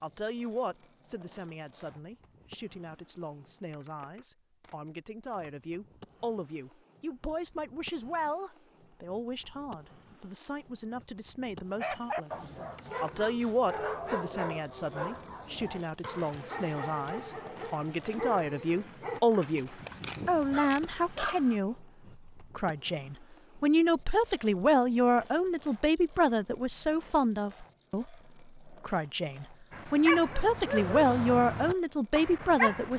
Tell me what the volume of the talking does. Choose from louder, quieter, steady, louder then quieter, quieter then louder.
louder.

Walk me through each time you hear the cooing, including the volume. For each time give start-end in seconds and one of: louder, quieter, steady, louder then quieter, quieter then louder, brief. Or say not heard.
not heard.